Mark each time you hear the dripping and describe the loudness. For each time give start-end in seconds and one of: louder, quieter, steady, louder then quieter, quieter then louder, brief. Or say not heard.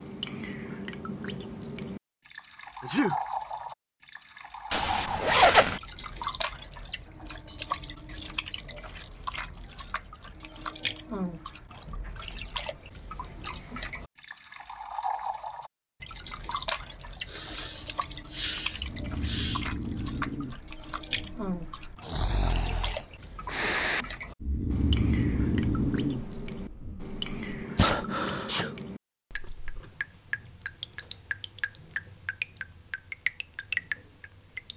0.0-34.7 steady.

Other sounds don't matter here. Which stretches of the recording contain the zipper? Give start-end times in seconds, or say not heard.
4.7-5.8.